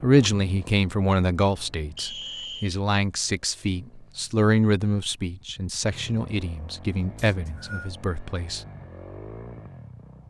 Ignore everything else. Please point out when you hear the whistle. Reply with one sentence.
The whistle can be heard from 1.9 to 2.7 s and from 7.2 to 7.9 s.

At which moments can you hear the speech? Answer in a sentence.
You can hear the speech from 0.0 to 8.6 s.